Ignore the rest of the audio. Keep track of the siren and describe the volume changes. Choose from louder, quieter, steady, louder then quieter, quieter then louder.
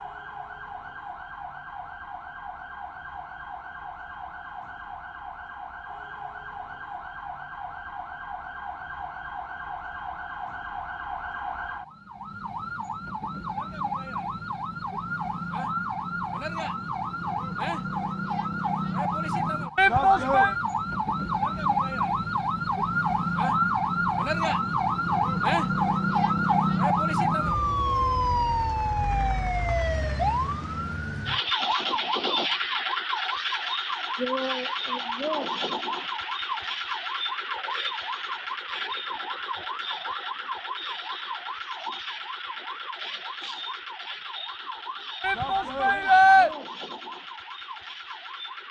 louder then quieter.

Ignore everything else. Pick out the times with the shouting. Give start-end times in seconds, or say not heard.
19.8-20.6, 45.2-46.5.